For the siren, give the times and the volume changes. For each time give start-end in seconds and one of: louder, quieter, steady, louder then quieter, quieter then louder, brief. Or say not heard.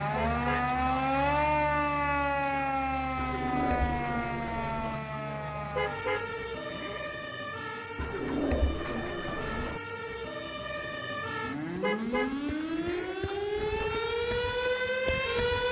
0.0-15.6 quieter then louder.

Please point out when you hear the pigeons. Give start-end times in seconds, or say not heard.
3.1-5.0, 8.0-9.8.